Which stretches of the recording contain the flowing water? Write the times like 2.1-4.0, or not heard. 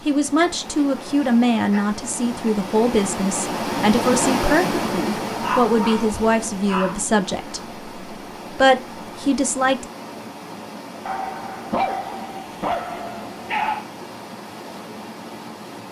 0.0-15.8.